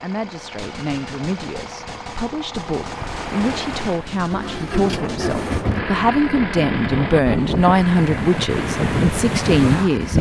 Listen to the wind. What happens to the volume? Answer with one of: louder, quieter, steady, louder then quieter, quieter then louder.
louder.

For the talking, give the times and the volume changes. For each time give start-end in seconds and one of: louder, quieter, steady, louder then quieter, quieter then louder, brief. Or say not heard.
0.0-10.1 louder.